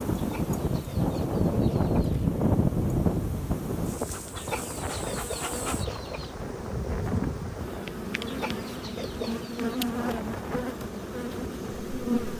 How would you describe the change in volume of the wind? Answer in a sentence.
The volume of the wind goes down.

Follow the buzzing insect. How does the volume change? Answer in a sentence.
The loudness of the buzzing insect goes up.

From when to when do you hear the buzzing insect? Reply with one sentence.
The buzzing insect can be heard from 0.0 to 12.3 s.